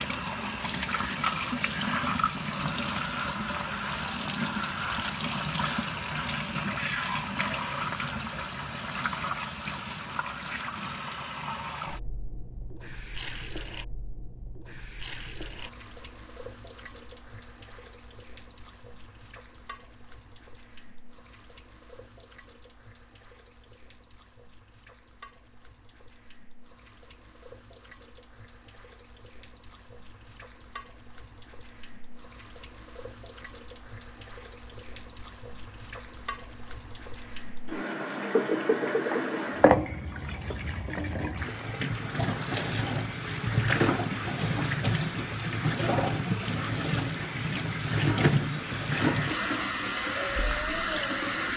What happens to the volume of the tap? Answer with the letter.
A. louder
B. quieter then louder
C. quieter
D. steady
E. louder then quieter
B.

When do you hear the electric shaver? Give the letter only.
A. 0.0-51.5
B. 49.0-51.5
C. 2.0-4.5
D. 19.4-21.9
B.